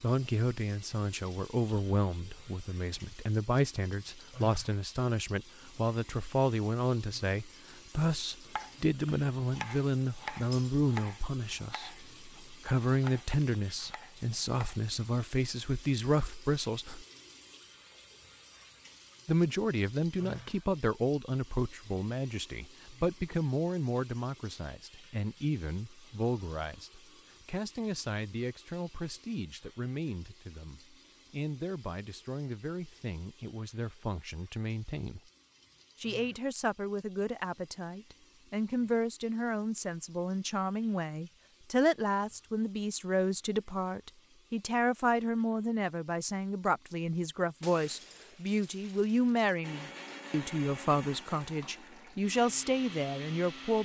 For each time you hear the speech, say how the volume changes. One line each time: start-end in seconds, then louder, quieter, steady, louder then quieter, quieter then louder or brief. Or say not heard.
0.0-17.1 steady
19.2-35.2 quieter
36.0-53.8 steady.